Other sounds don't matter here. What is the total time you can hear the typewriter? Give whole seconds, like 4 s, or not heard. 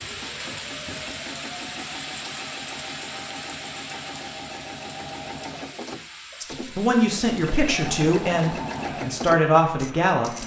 not heard.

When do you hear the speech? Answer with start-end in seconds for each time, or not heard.
6.4-10.4.